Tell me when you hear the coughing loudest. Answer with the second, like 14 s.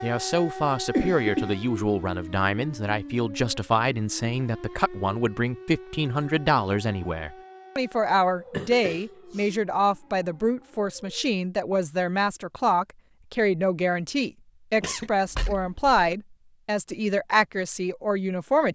1 s.